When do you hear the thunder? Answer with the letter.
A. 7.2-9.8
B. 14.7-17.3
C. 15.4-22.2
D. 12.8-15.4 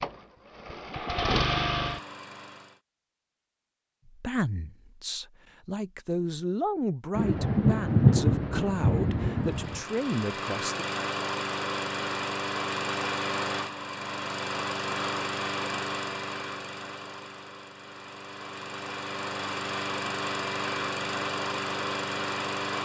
A.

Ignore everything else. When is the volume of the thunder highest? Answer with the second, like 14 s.
8 s.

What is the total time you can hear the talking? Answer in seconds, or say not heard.
7 s.